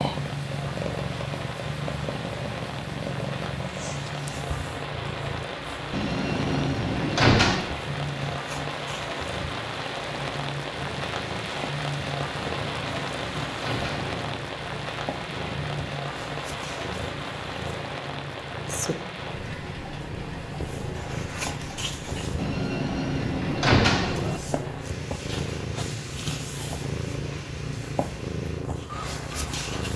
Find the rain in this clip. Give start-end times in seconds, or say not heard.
0.0-29.9.